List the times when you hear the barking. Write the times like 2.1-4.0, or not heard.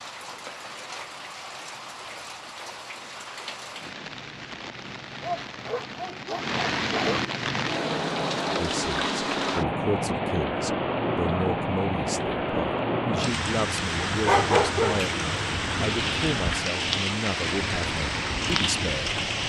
5.2-7.2, 14.2-15.2.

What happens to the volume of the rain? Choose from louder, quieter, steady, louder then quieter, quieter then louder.
louder.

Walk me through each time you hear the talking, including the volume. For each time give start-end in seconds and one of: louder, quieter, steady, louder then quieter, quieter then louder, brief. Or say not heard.
8.6-19.2 steady.